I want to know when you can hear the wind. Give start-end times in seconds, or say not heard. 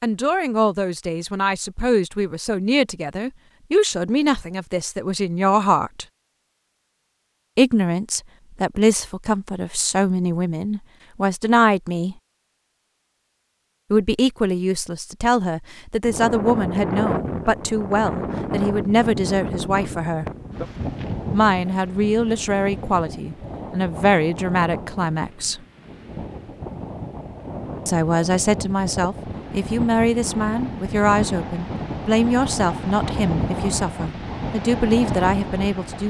16.1-36.0.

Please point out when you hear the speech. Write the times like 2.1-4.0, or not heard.
0.0-6.0, 7.5-12.2, 13.9-20.2, 21.3-25.6, 27.9-36.0.